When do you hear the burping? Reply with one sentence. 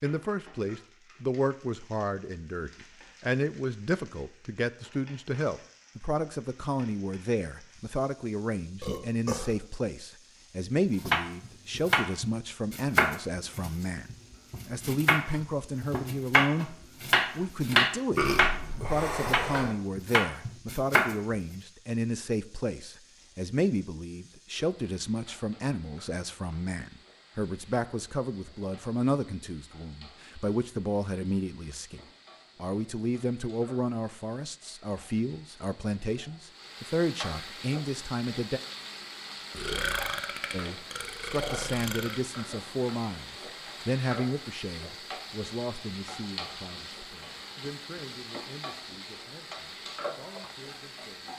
The burping can be heard from 8.8 to 9.7 s, from 18.1 to 19.8 s and from 39.5 to 42.2 s.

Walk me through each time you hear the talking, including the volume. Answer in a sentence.
You can hear the talking from 0.0 to 38.6 s, at a steady volume; and from 40.5 to 51.3 s, getting quieter.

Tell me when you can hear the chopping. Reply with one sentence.
You can hear the chopping from 10.9 to 21.4 s.